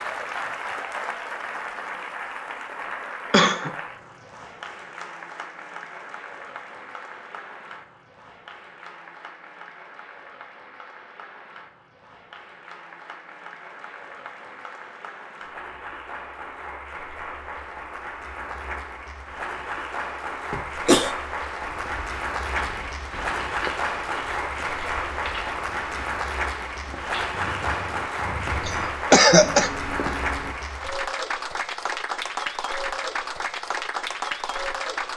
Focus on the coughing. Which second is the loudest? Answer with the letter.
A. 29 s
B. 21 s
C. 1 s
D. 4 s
A.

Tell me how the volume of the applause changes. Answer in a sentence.
The loudness of the applause goes down, then up.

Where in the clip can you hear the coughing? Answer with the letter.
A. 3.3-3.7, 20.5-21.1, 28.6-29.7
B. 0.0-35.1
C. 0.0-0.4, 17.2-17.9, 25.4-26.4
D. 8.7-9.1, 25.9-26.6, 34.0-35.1
A.